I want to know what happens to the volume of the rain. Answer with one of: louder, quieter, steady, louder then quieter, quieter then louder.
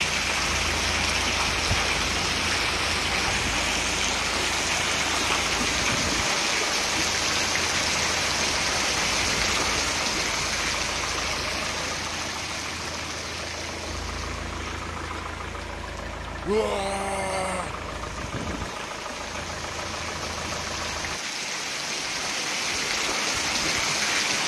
quieter then louder.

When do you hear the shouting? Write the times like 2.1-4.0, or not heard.
16.4-17.8.